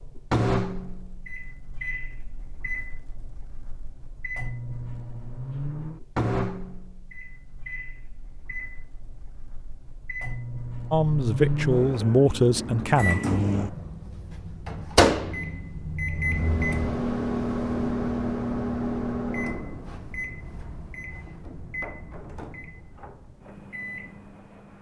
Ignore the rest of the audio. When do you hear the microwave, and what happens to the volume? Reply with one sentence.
You can hear the microwave from 0.0 to 24.7 s, getting louder then quieter.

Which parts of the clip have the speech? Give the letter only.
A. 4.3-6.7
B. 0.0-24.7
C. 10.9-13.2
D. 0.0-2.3
C.